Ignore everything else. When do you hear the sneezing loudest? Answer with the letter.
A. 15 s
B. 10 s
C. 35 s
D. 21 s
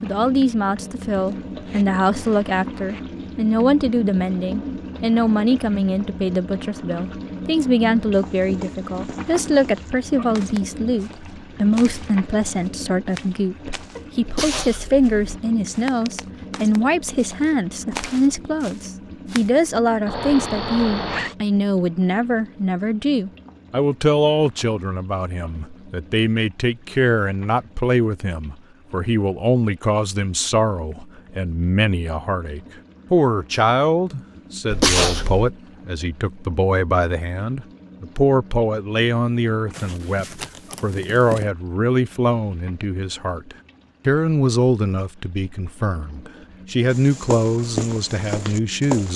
C.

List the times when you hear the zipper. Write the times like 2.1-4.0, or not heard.
1.1-3.0, 20.1-21.4, 39.7-41.5.